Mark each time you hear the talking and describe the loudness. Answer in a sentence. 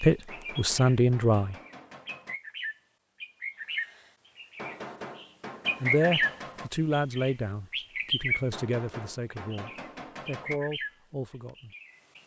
The talking can be heard briefly from 0.0 to 1.6 s; and from 5.8 to 11.8 s, getting quieter then louder.